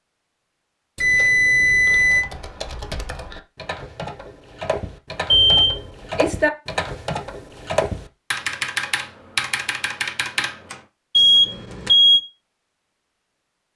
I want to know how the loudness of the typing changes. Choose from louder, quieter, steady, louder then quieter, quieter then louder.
louder.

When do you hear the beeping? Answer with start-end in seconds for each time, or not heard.
0.9-2.2, 5.3-6.5, 11.2-12.2.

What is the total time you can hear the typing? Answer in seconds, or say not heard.
9 s.